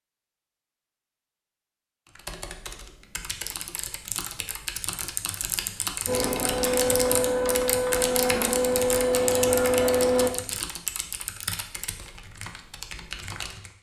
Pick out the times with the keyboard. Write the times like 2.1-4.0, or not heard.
2.0-13.7.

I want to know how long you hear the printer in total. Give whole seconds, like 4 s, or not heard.
4 s.